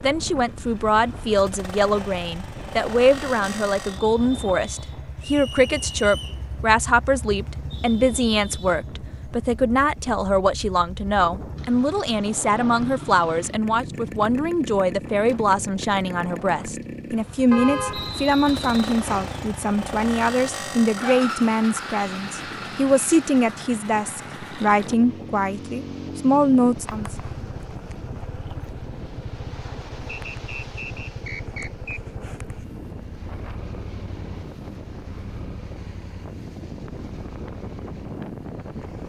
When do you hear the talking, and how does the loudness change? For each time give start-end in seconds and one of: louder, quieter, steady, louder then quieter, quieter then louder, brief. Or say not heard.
0.0-27.1 steady.